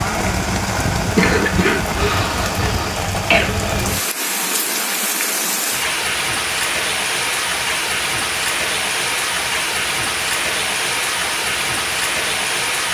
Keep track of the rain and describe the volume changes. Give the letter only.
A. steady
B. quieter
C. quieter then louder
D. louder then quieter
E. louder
A.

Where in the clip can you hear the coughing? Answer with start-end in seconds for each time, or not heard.
1.1-3.5.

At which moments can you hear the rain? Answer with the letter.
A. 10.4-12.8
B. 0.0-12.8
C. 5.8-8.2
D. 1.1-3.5
B.